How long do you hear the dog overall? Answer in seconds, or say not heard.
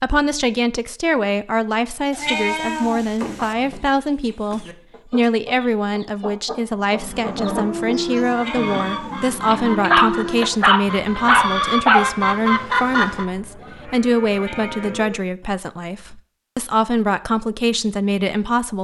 3 s.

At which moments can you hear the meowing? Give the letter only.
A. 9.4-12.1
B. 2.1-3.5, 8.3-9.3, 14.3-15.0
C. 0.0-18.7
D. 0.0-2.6
B.